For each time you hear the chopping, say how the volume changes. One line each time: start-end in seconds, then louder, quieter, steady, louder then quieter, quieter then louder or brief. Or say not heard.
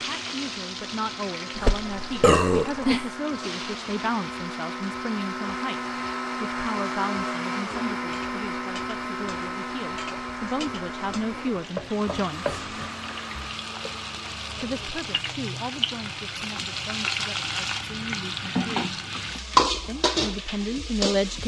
not heard.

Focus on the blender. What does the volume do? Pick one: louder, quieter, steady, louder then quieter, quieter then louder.
louder then quieter.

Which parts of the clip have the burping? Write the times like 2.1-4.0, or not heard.
1.6-3.0.